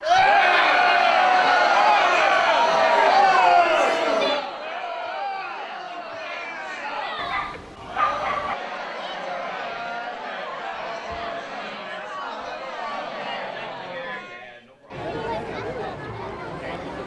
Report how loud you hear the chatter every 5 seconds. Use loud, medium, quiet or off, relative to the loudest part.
loud, quiet, quiet, quiet.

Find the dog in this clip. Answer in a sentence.
You can hear the dog from 7.2 to 8.6 s.